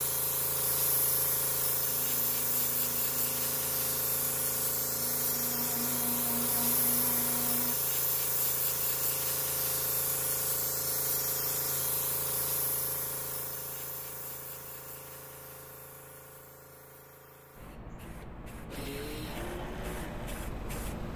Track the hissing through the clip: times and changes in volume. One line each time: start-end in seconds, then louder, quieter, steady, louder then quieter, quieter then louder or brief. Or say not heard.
0.0-21.1 quieter.